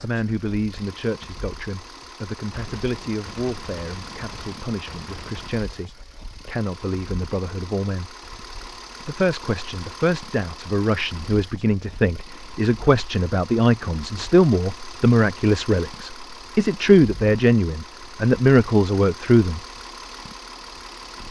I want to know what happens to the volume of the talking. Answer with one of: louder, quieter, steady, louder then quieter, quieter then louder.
louder.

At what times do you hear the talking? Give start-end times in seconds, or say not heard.
0.0-8.2, 9.1-19.6.